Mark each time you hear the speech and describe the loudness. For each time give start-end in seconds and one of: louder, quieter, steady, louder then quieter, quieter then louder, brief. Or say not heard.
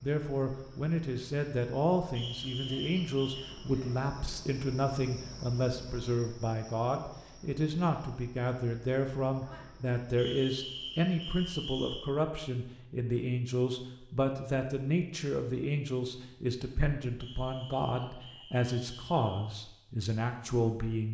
0.0-21.0 steady.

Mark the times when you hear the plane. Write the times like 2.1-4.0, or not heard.
not heard.